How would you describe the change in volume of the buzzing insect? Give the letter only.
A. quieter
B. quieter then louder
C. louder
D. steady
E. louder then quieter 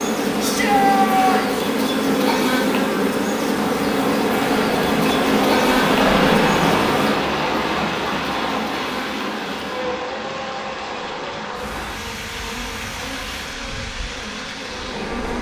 A.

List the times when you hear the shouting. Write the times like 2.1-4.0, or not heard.
0.4-1.6.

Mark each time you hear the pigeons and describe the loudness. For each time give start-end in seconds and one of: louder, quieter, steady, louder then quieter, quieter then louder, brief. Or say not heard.
not heard.